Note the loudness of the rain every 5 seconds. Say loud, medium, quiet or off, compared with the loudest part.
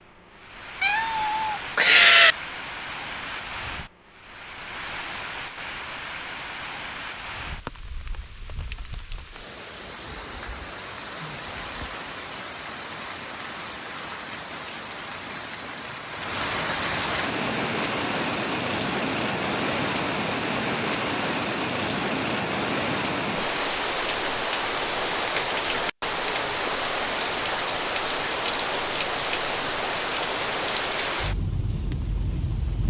medium, medium, medium, loud, loud, loud, loud.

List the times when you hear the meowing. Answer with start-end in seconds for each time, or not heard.
0.8-2.4.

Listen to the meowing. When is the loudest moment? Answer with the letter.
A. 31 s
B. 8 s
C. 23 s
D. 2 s
D.